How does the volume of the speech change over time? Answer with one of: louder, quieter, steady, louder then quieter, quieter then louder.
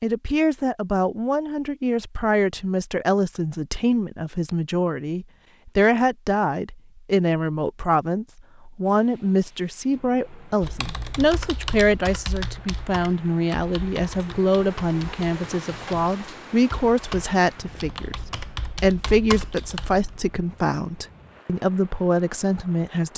steady.